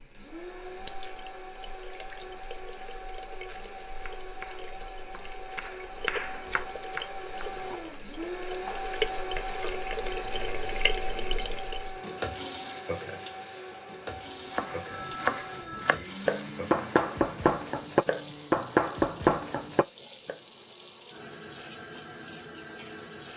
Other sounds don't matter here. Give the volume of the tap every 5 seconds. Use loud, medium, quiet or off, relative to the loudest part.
medium, loud, loud, medium, medium.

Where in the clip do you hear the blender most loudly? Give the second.
9 s.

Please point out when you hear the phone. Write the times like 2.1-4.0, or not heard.
14.7-16.1.